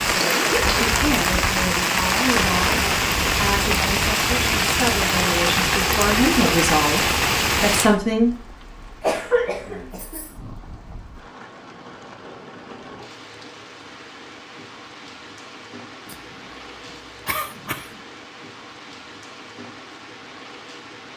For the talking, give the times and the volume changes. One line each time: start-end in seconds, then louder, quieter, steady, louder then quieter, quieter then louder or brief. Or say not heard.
0.0-8.3 louder.